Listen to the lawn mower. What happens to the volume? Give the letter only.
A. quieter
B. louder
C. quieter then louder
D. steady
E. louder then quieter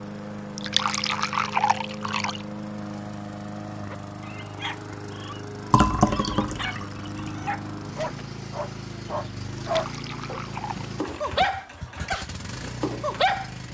D.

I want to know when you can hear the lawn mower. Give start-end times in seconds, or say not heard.
0.0-13.6.